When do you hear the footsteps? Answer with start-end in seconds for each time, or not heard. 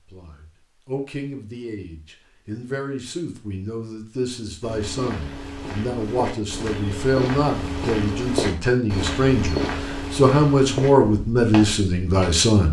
4.6-12.3.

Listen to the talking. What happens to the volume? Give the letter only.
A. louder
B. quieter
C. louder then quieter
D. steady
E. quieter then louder
A.